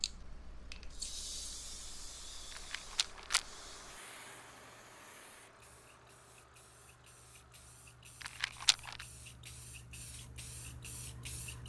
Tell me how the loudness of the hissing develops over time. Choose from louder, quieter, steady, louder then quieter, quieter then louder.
quieter then louder.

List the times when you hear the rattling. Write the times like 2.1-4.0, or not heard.
2.5-3.5, 8.2-9.1.